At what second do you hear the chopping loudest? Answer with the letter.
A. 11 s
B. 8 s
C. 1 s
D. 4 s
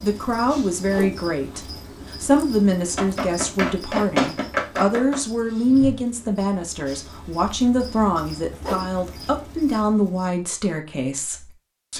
D.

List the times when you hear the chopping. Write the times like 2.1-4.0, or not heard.
3.0-5.2.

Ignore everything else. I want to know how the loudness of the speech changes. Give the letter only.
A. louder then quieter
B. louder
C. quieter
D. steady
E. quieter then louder
D.